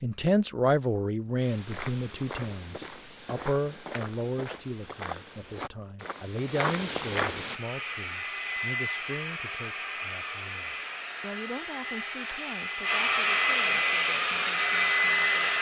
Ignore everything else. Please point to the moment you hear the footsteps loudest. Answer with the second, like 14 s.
7 s.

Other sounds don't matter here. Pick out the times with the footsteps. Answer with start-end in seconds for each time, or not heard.
1.4-7.6.